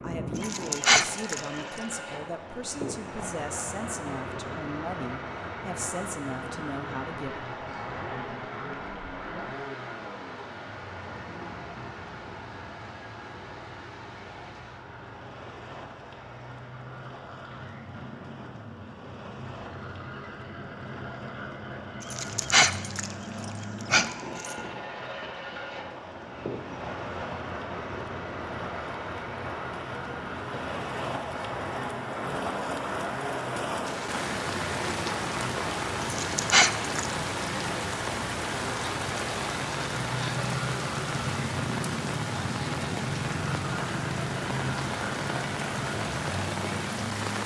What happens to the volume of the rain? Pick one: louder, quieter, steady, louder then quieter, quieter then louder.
louder.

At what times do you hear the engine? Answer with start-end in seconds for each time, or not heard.
0.0-47.4.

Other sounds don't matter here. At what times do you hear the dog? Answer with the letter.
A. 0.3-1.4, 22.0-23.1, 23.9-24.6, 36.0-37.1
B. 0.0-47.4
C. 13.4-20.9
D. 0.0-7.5
A.